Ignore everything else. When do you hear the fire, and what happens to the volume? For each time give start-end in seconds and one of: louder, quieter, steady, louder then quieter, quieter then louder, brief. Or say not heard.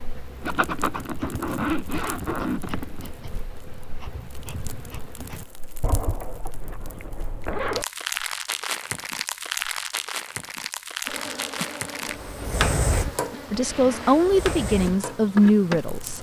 0.0-16.1 louder.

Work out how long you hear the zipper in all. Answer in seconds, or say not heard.
7 s.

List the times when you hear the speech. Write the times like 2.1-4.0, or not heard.
13.5-16.1.